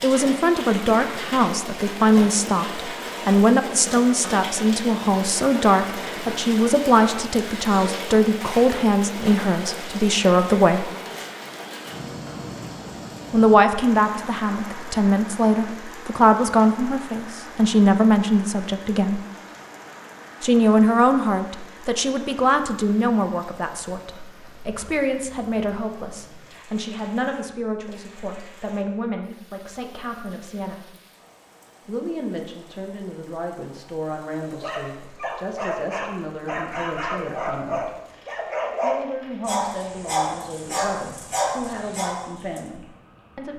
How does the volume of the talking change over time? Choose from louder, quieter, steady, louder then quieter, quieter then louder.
quieter.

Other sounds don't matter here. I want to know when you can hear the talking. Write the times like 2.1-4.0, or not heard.
0.0-10.9, 13.3-19.2, 20.4-30.9, 31.9-38.0, 38.8-43.5.